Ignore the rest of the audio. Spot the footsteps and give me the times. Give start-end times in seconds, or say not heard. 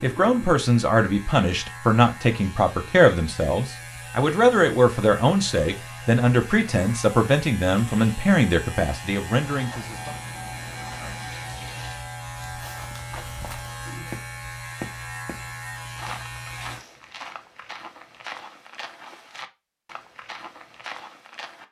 12.4-21.6.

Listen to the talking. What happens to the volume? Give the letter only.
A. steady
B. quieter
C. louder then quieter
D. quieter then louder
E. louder
A.